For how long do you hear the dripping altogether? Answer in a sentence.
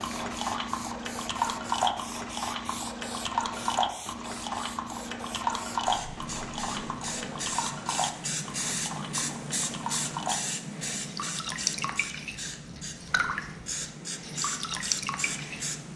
You can hear the dripping for 16 seconds altogether.